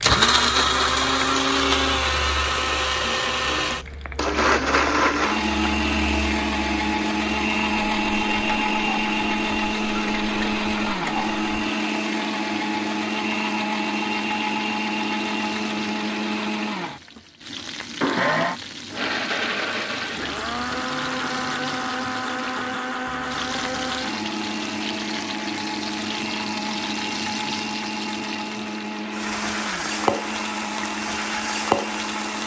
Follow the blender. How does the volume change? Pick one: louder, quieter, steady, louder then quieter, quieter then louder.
quieter.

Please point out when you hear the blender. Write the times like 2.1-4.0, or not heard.
0.0-32.4.